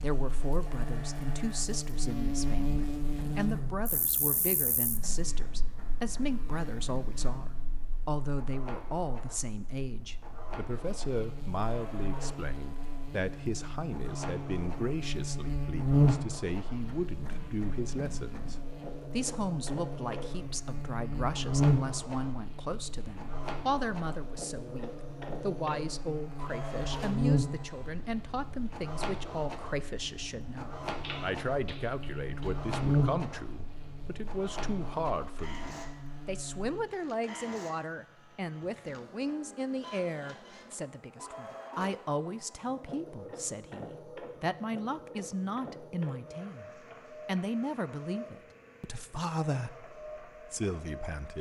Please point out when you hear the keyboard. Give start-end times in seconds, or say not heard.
31.0-32.5.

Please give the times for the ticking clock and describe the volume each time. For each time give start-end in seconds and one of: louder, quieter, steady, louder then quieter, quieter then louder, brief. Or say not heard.
not heard.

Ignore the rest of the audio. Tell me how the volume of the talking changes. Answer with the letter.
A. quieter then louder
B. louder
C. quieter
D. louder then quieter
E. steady
E.